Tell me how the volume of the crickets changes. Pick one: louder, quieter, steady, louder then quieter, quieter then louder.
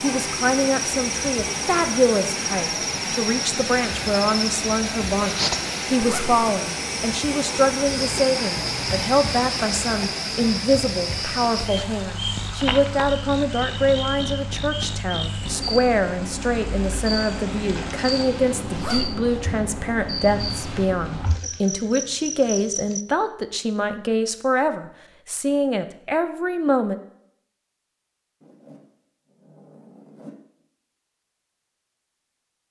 steady.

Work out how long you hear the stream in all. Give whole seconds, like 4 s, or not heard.
18 s.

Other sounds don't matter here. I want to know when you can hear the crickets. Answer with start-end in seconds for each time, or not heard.
0.2-23.1.